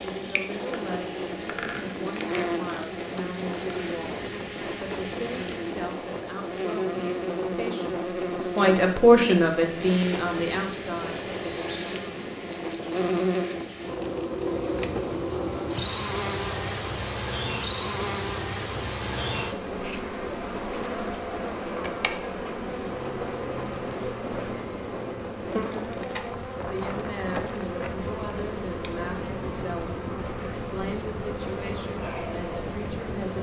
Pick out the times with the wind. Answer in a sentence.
The wind can be heard from 0.0 to 33.3 s.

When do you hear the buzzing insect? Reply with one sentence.
You can hear the buzzing insect from 0.0 to 33.3 s.